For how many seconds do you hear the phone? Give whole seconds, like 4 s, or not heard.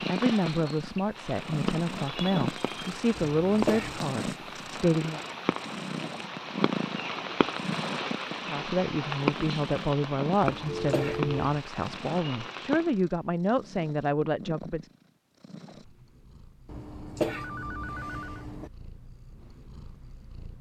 3 s.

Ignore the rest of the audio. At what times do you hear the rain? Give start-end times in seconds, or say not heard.
0.0-12.9.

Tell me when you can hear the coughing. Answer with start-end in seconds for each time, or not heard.
3.1-4.0, 10.4-11.4, 16.6-18.7.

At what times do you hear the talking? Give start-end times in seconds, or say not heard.
0.1-5.2, 8.4-14.9.